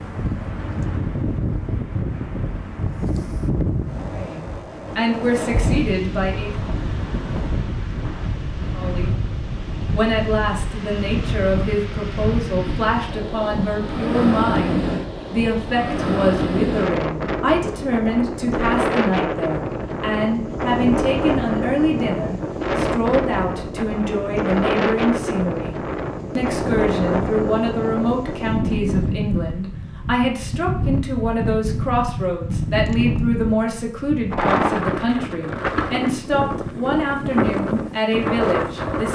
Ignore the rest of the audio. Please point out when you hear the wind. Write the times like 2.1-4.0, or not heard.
0.0-39.1.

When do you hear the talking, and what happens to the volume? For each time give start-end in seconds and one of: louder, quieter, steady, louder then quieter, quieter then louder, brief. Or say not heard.
4.1-6.5 brief
8.7-9.2 brief
9.9-25.8 steady
26.4-39.1 steady.